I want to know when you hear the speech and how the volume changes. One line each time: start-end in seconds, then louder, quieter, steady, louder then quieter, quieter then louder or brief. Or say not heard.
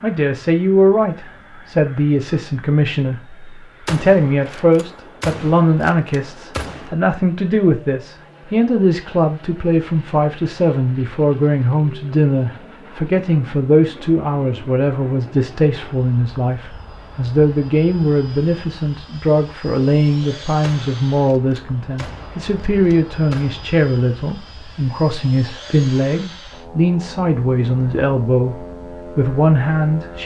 0.0-30.2 steady.